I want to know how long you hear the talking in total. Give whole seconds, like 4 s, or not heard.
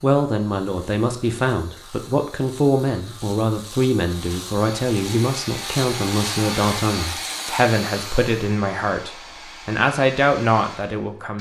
11 s.